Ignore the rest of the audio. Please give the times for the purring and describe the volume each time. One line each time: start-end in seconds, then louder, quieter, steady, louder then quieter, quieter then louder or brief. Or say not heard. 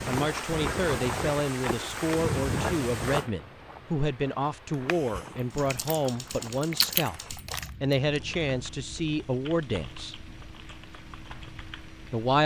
not heard.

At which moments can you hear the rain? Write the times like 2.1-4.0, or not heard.
0.0-12.4.